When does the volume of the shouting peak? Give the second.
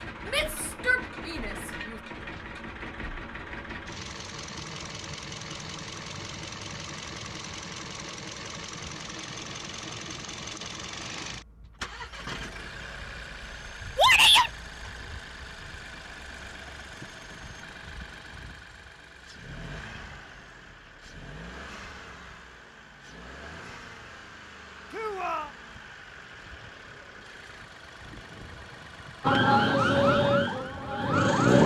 14 s.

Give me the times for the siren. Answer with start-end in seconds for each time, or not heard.
29.2-31.6.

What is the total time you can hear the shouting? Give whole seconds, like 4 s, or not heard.
3 s.